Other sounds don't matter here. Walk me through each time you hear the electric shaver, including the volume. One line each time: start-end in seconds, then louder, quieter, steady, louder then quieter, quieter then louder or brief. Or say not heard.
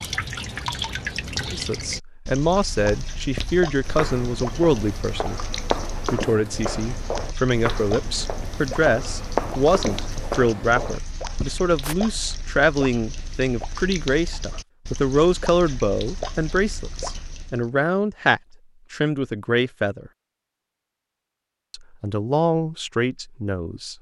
not heard.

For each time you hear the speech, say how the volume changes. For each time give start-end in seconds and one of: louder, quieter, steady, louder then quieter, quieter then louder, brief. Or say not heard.
1.5-20.1 steady
21.7-23.9 brief.